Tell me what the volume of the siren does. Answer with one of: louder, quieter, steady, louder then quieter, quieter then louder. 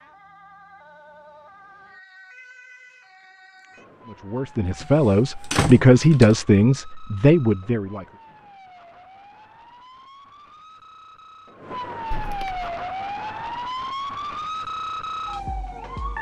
louder.